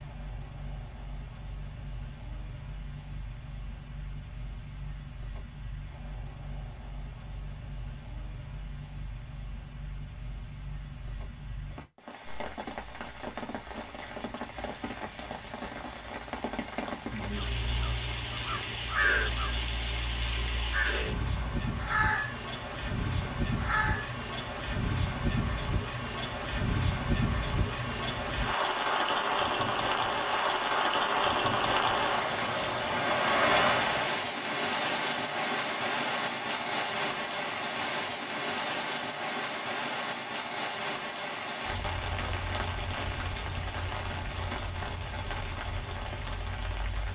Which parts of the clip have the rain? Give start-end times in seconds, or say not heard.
0.0-47.1.